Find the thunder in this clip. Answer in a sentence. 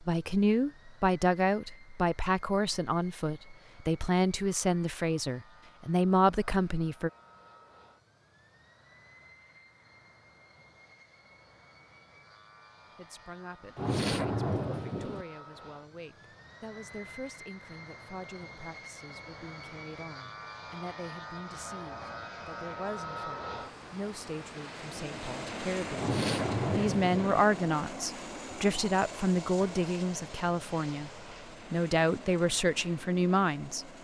The thunder can be heard from 13.8 to 15.2 s and from 25.9 to 27.4 s.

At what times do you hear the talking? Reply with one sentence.
You can hear the talking from 0.0 to 7.1 s, from 12.9 to 31.1 s and from 31.7 to 33.9 s.